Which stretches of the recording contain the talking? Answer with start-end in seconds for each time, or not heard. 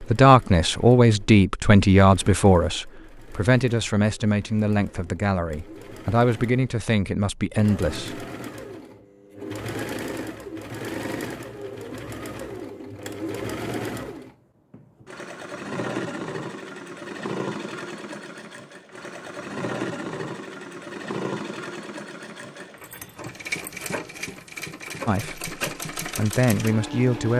0.0-8.2, 25.1-27.3.